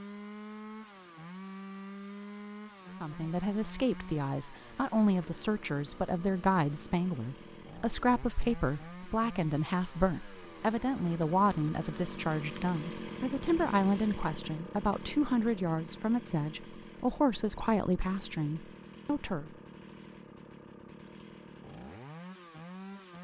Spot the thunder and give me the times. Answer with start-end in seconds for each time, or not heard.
not heard.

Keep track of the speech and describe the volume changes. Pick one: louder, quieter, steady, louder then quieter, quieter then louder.
steady.